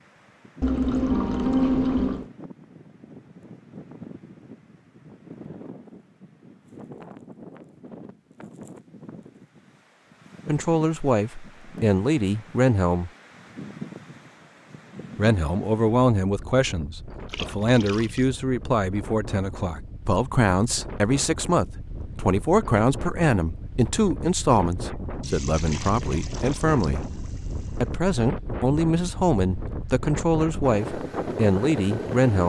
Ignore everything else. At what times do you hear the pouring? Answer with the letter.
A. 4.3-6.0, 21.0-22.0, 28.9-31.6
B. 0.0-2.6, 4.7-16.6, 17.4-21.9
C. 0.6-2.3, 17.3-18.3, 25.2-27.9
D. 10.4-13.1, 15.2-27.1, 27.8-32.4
C.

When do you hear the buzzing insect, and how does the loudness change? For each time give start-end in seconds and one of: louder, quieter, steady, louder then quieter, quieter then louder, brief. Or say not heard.
not heard.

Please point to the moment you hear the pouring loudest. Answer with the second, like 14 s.
2 s.